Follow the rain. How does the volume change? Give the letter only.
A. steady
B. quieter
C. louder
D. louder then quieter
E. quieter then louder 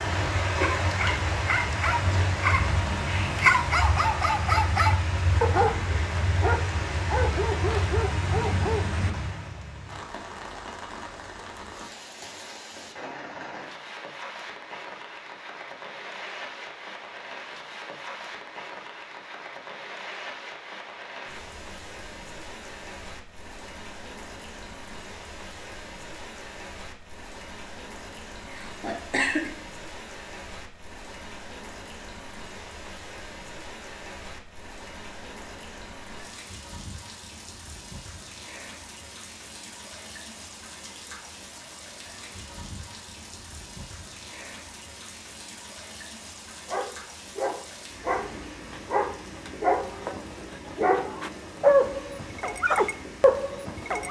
B.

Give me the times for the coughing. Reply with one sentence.
You can hear the coughing from 28.4 to 29.5 s.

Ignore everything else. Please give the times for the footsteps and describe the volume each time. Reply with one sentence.
The footsteps can't be heard in this clip.